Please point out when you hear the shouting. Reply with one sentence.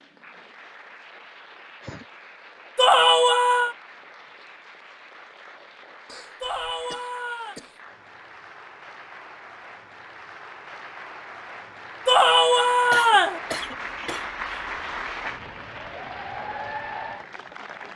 You can hear the shouting from 2.8 to 3.8 s, from 6.4 to 7.5 s and from 12.1 to 13.4 s.